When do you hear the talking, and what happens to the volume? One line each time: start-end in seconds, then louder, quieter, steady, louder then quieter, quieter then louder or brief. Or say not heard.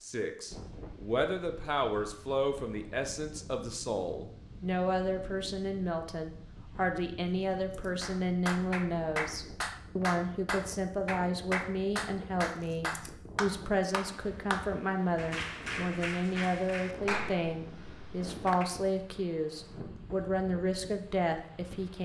0.0-22.0 steady.